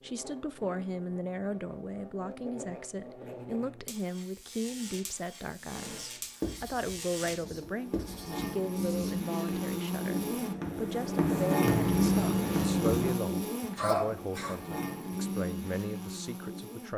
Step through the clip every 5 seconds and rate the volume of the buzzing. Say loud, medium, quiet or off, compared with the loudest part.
quiet, medium, loud, medium.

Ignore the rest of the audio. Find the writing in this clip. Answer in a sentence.
You can hear the writing from 5.7 to 13.2 s.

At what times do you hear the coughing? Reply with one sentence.
You can hear the coughing from 13.8 to 14.6 s.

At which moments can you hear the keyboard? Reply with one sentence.
You can't hear the keyboard here.